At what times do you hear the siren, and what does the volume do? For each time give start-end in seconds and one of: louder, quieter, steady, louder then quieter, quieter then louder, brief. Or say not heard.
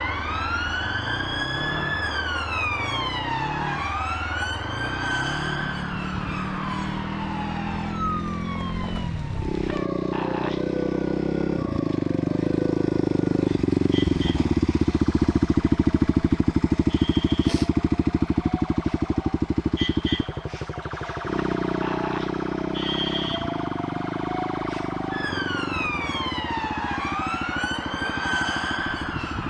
0.0-29.4 quieter then louder.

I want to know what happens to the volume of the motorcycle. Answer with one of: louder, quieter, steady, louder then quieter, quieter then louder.
louder then quieter.